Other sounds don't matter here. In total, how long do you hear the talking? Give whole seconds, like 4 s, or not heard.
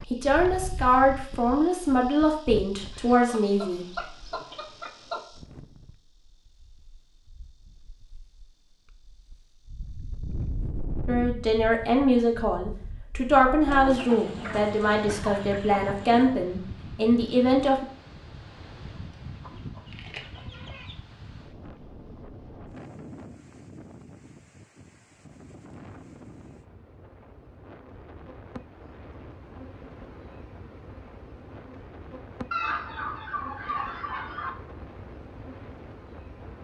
11 s.